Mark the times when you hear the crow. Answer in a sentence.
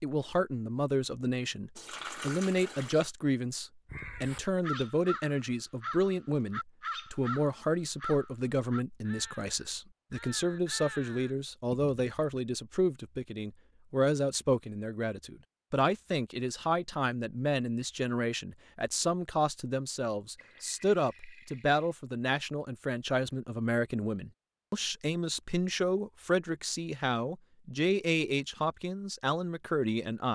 The crow can be heard from 3.9 to 11.3 s.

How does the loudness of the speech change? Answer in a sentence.
The loudness of the speech stays about the same.